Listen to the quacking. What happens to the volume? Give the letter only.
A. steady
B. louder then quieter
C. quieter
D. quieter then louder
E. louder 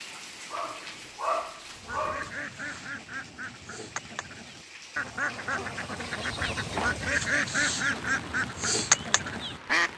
E.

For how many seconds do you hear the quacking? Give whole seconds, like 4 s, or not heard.
8 s.